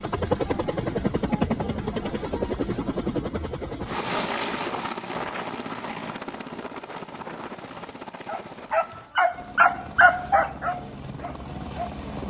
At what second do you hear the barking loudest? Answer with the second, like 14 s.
10 s.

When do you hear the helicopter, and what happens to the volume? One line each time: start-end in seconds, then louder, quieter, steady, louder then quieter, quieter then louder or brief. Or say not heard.
0.0-12.2 quieter.